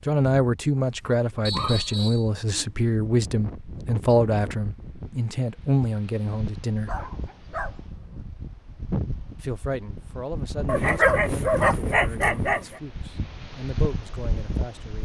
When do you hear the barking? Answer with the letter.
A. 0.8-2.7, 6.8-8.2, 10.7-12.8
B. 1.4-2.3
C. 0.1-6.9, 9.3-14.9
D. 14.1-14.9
A.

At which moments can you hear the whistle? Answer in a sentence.
You can hear the whistle from 1.4 to 2.3 s.